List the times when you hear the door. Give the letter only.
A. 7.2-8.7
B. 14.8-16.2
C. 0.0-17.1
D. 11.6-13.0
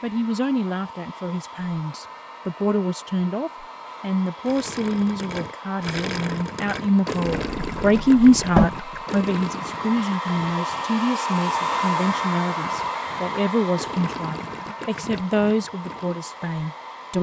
A.